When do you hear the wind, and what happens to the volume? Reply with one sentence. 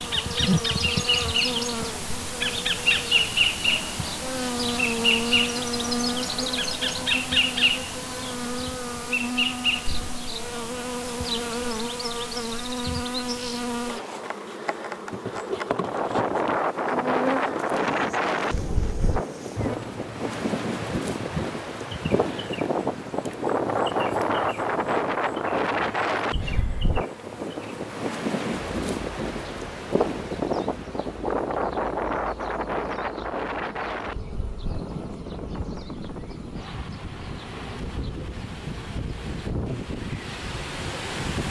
You can hear the wind from 15.7 to 41.4 s, getting quieter.